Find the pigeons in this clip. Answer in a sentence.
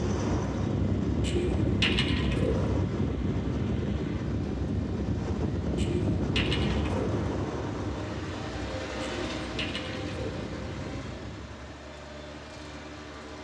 You can hear the pigeons from 1.2 to 2.8 s, from 5.8 to 7.2 s and from 9.0 to 10.6 s.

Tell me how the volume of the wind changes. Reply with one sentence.
The volume of the wind goes down.